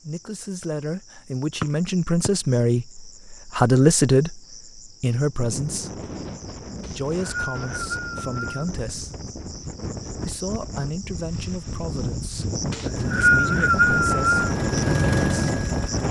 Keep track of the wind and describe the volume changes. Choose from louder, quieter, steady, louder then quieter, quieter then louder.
louder.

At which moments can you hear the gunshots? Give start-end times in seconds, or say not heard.
not heard.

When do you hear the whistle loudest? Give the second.
13 s.